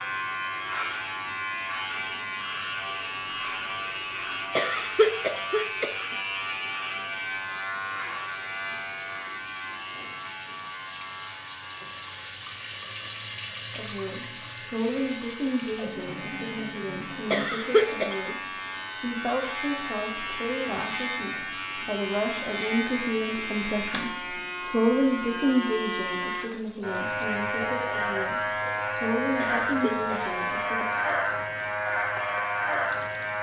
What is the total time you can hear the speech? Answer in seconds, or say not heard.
17 s.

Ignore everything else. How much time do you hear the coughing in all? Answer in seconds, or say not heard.
3 s.